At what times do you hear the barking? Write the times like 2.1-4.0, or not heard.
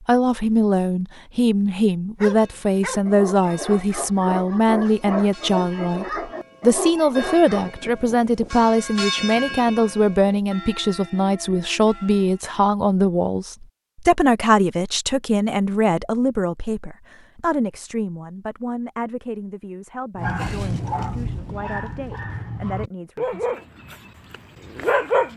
2.1-7.7, 20.1-25.3.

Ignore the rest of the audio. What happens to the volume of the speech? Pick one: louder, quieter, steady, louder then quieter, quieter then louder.
quieter.